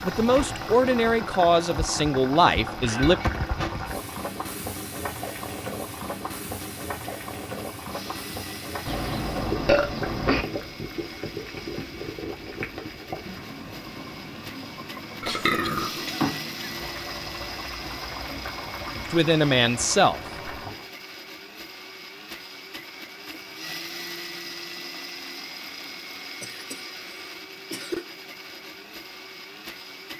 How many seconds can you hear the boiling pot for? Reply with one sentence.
You can hear the boiling pot for 21 seconds altogether.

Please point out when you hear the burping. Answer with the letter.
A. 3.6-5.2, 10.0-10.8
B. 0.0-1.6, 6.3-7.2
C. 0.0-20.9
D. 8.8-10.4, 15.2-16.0
D.